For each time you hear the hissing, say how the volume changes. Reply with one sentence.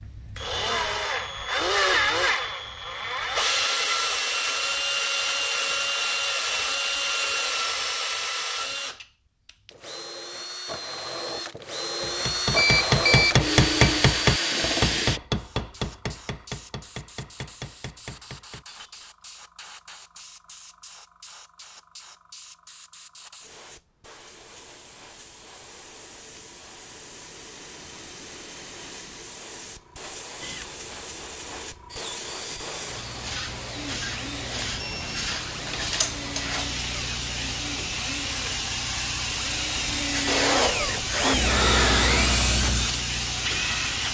You can hear the hissing from 15.3 to 44.1 s, getting louder.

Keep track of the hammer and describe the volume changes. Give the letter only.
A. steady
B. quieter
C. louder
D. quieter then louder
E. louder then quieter
B.